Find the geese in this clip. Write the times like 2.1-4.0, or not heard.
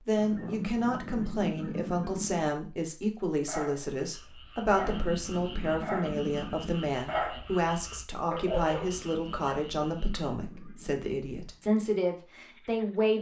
0.1-2.5, 4.6-6.9, 8.8-11.0.